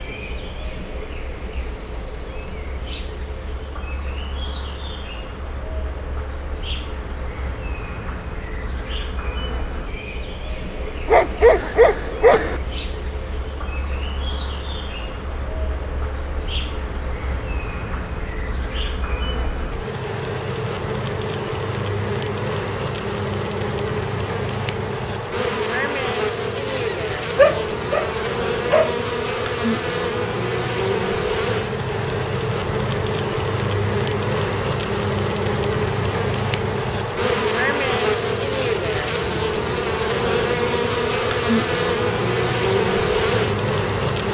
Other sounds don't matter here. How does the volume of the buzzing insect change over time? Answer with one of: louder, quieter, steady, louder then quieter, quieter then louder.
louder.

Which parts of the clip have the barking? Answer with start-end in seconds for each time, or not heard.
11.1-12.6, 26.7-28.9.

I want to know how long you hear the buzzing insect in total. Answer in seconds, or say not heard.
44 s.